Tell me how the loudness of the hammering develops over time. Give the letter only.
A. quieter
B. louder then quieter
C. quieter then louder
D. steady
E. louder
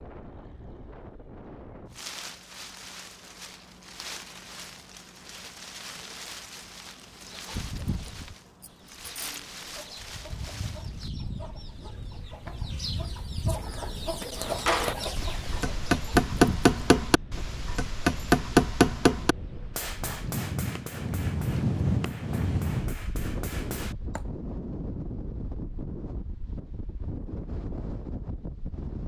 A.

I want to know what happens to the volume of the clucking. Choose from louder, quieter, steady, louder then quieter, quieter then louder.
louder.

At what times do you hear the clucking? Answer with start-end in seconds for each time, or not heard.
7.2-16.8.